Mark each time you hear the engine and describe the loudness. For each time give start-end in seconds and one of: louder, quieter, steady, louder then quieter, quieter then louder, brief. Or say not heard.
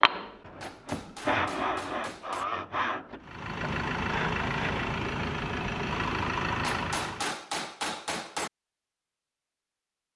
3.2-7.3 steady.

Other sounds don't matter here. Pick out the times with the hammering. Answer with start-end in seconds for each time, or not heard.
0.6-2.5, 6.6-8.5.